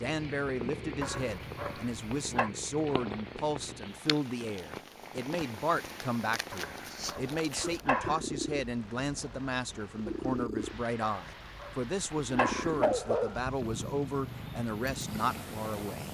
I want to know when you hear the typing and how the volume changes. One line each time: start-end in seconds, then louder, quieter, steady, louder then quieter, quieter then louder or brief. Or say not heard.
not heard.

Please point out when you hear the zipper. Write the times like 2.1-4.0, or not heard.
not heard.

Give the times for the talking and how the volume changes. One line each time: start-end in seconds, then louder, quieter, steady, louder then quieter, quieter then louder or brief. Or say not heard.
0.0-16.0 steady.